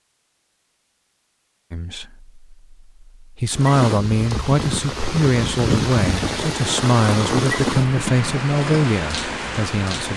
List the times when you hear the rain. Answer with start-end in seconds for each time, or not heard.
3.5-10.1.